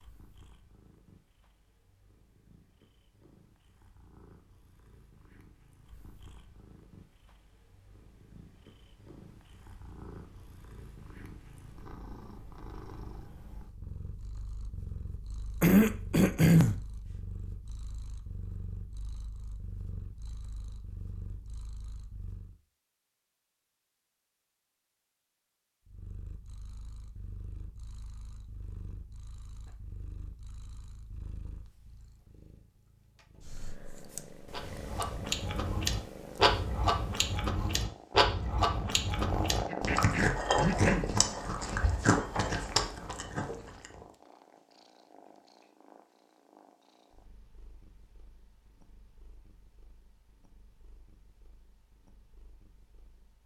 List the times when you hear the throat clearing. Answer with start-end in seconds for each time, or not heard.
15.6-16.8, 39.6-41.1.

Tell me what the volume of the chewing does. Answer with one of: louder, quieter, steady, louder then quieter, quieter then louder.
steady.